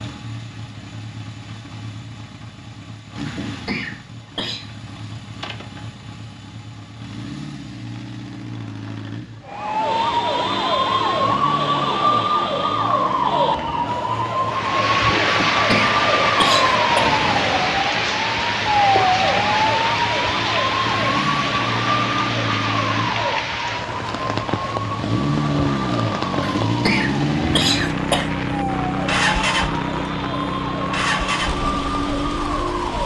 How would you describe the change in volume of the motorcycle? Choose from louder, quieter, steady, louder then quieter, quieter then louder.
louder.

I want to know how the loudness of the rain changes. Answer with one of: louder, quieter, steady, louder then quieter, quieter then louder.
quieter.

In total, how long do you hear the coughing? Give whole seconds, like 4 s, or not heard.
5 s.